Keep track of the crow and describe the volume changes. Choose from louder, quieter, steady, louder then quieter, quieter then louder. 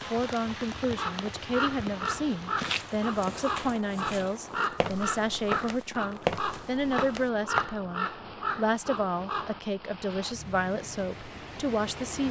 steady.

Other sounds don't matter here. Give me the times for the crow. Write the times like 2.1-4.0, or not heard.
0.8-9.6.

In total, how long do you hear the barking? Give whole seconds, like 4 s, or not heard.
not heard.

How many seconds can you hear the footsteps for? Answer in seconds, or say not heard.
5 s.